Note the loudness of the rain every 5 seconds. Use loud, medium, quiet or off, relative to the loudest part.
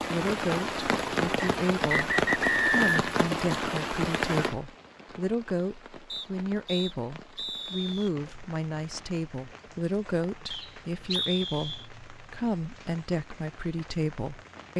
loud, quiet, quiet.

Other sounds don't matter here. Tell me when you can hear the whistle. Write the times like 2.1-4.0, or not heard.
1.4-3.0, 6.1-8.1, 10.5-11.8.